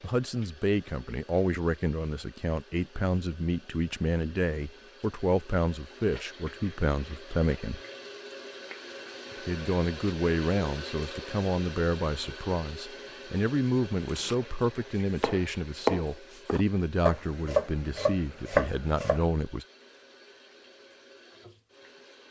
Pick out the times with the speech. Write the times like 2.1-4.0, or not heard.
0.0-7.8, 9.4-19.6.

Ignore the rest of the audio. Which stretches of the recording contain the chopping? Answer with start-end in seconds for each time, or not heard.
14.0-19.2.